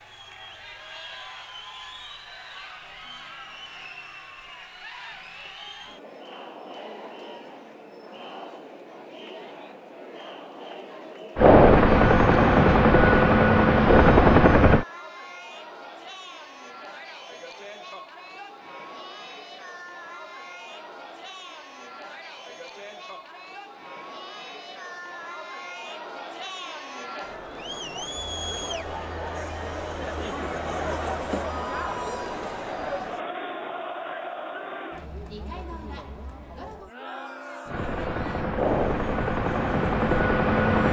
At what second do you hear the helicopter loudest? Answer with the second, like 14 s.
12 s.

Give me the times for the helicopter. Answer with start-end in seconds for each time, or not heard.
11.3-14.8, 37.6-40.8.